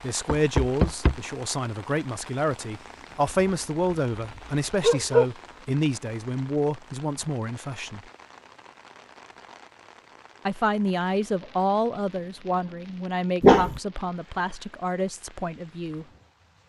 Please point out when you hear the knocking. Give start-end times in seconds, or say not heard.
0.2-1.2.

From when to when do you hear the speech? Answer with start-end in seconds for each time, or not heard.
0.0-8.0, 10.4-16.1.